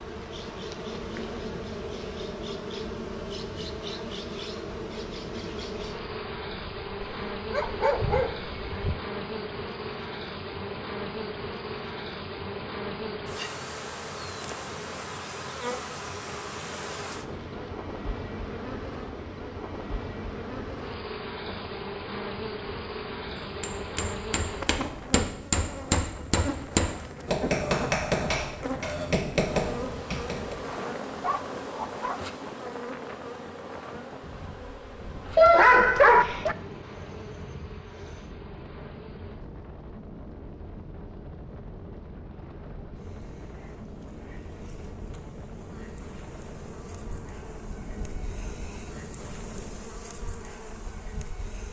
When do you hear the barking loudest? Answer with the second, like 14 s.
36 s.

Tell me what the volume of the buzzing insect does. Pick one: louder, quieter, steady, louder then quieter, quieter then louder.
quieter.